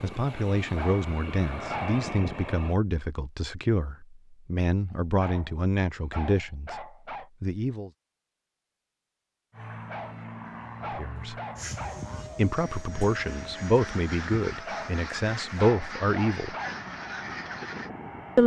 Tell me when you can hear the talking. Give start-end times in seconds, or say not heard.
0.0-7.9, 10.9-11.3, 12.3-16.6.